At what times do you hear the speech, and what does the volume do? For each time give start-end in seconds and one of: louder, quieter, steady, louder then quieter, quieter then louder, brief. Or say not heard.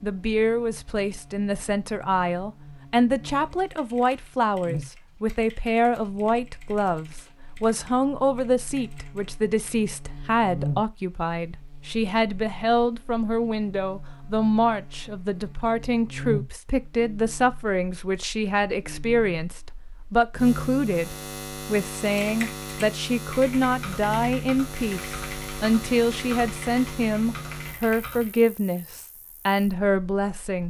0.0-30.6 steady.